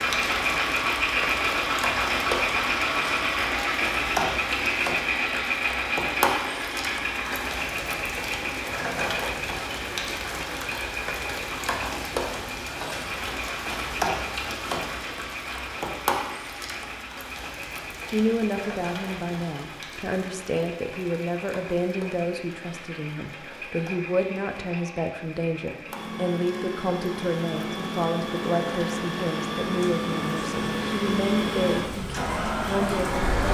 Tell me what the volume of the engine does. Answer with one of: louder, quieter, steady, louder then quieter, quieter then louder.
quieter then louder.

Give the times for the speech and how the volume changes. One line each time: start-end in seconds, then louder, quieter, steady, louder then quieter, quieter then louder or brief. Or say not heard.
18.1-33.5 steady.